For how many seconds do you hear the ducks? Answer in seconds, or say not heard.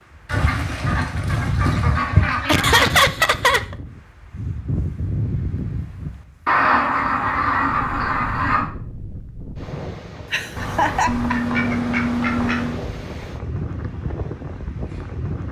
7 s.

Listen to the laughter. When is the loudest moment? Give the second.
3 s.